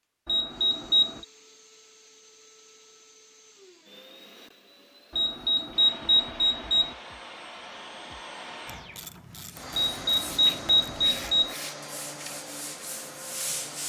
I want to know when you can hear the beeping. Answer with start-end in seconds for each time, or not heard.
0.2-1.2, 5.2-7.0, 9.8-11.6.